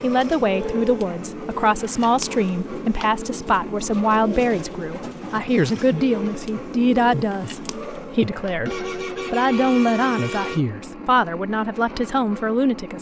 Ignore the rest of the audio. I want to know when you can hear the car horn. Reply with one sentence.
You can hear the car horn from 0.5 to 1.1 s and from 8.7 to 10.6 s.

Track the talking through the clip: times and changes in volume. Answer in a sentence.
The talking can be heard from 0.0 to 12.9 s, at a steady volume.